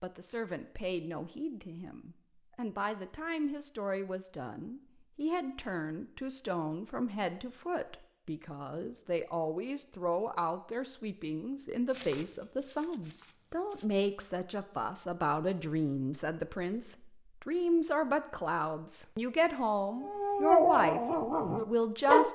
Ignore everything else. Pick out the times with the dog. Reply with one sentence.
The dog can be heard from 20.0 to 22.3 s.